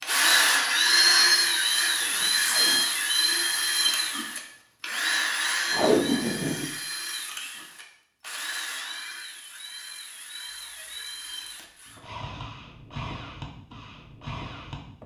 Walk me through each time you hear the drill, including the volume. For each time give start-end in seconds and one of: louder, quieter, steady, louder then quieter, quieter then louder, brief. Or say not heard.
0.0-15.0 quieter.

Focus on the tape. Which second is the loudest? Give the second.
6 s.